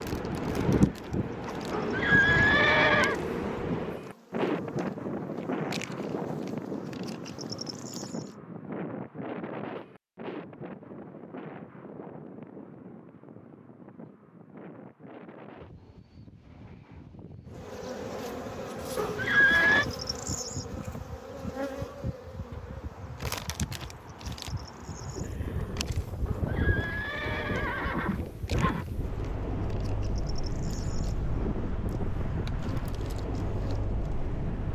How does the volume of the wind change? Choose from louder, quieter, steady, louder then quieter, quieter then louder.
quieter then louder.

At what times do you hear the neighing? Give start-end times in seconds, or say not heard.
1.7-3.2, 18.9-19.9, 26.2-28.9.